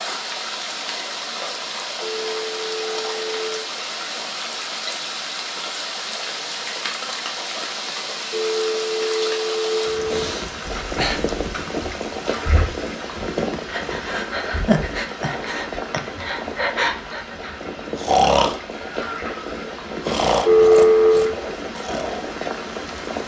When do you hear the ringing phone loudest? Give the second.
21 s.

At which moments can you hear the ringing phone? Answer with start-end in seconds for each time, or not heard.
2.0-3.7, 8.3-10.3, 20.4-21.4.